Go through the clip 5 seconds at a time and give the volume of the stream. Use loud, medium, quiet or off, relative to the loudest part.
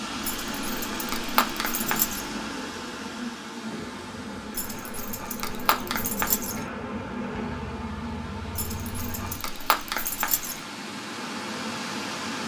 loud, medium, loud.